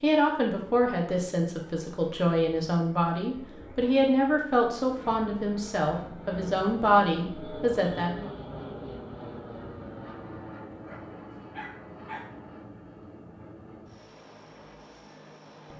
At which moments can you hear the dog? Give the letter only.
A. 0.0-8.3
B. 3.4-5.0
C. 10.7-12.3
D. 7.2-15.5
C.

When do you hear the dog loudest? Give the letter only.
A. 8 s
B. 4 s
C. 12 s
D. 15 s
C.